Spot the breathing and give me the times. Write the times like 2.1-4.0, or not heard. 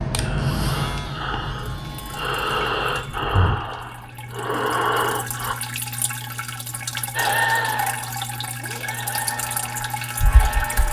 0.1-5.5, 7.2-10.8.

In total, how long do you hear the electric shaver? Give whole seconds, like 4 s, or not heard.
5 s.